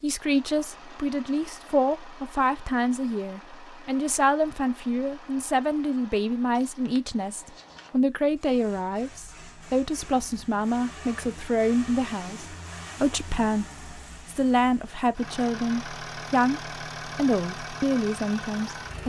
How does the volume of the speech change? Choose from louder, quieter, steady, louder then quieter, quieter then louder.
steady.